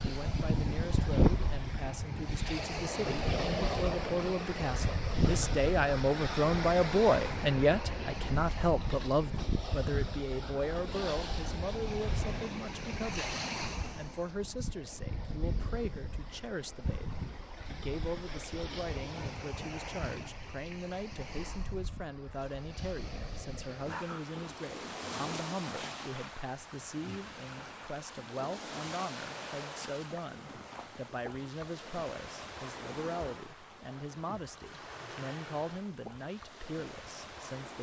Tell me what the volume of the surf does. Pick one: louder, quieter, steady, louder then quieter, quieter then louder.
quieter.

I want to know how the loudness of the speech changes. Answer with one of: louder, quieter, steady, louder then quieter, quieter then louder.
quieter.